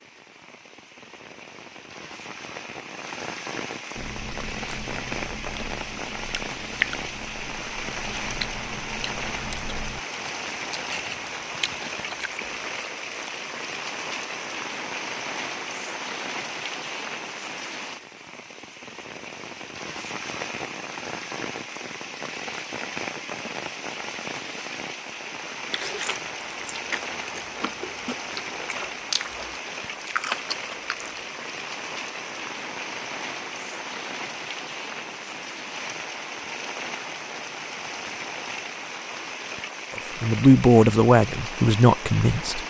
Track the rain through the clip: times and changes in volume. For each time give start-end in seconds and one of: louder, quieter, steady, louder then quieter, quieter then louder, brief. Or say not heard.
0.0-42.6 steady.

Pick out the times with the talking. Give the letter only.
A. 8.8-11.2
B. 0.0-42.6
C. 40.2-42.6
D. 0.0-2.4
C.